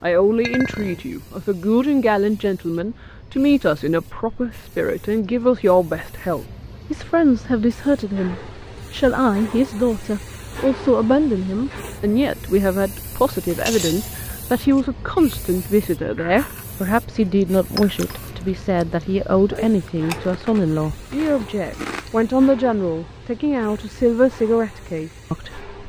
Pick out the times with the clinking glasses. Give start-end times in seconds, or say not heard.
0.4-1.1, 13.3-14.8, 17.8-18.2.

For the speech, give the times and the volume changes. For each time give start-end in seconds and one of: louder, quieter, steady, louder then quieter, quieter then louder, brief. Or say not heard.
0.0-25.7 steady.